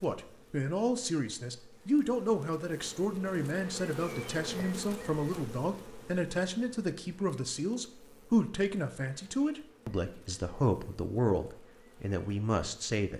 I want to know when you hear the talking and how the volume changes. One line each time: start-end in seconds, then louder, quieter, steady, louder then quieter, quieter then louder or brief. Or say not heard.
0.0-13.1 steady.